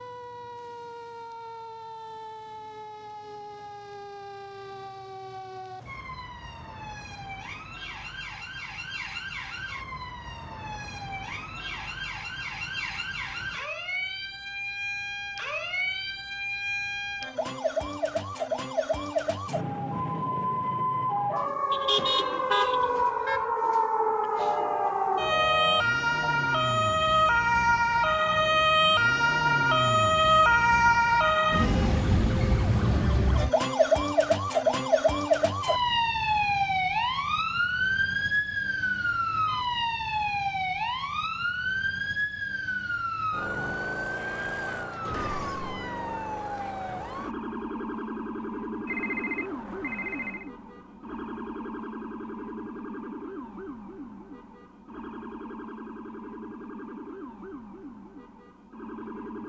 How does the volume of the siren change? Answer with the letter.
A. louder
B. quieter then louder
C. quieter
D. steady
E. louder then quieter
E.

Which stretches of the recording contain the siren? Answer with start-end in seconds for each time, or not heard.
0.0-59.4.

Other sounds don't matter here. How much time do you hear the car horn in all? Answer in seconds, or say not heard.
2 s.